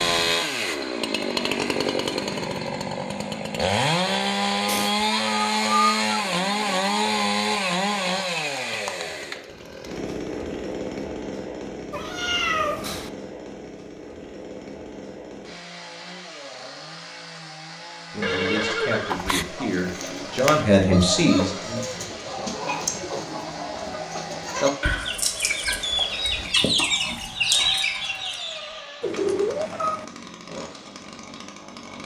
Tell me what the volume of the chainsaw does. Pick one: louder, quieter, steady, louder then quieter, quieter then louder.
quieter.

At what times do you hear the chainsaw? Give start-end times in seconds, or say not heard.
0.0-32.0.